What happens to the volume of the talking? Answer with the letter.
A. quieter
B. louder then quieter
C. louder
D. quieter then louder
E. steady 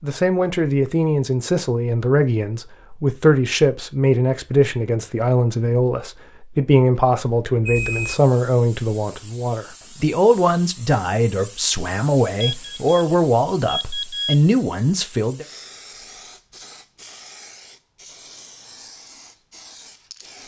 E.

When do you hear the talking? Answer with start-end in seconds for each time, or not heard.
0.0-15.4.